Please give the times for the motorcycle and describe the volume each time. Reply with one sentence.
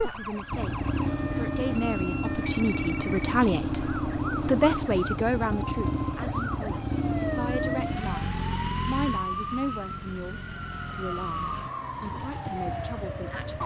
The motorcycle can be heard from 0.0 to 13.6 s, getting quieter.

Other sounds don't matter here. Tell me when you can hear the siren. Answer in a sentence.
The siren can be heard from 0.0 to 13.6 s.